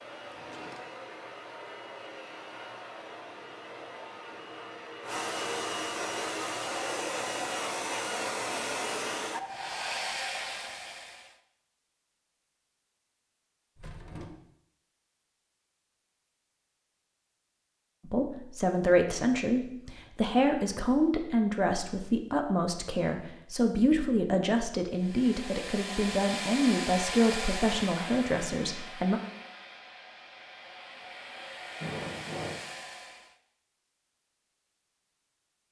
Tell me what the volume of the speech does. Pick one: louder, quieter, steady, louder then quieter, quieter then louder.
steady.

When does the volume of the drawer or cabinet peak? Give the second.
32 s.